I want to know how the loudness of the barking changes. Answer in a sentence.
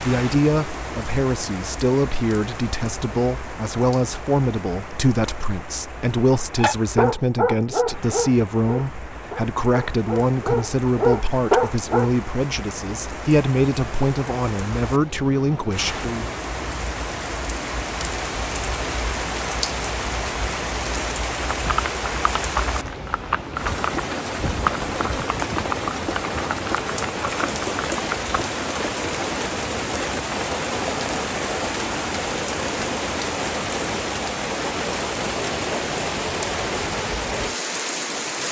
The loudness of the barking goes down, then up.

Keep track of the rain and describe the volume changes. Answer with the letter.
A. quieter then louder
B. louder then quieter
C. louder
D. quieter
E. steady
C.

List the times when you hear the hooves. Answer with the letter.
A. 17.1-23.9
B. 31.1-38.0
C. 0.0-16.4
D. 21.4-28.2
D.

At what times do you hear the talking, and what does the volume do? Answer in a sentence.
The talking can be heard from 0.0 to 16.4 s, at a steady volume.